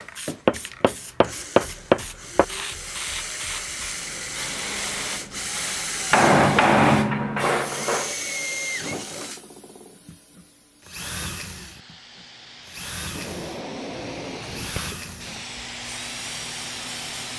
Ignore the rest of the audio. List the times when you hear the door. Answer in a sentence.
You can hear the door from 13.1 to 14.8 s.